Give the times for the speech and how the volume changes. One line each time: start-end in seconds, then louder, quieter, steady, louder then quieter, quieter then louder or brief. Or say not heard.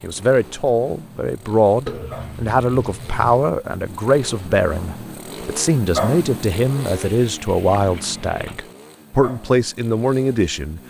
0.0-10.8 steady.